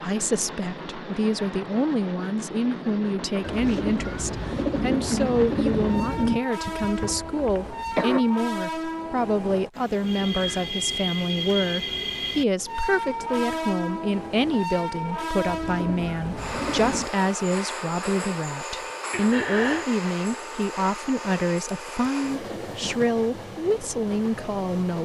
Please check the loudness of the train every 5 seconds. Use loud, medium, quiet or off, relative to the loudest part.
medium, loud, loud, loud, medium.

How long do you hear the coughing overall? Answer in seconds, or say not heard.
2 s.